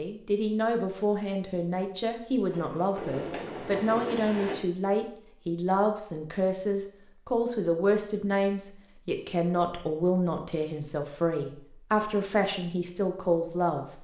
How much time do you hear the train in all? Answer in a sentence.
The train can be heard for 2 seconds in total.